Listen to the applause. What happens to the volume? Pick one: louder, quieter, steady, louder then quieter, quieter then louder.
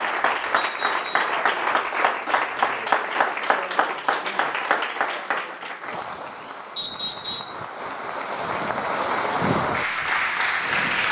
quieter then louder.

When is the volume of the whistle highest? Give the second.
7 s.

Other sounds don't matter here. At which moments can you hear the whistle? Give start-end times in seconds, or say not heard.
0.6-1.4, 6.8-7.6.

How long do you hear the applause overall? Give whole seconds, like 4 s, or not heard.
11 s.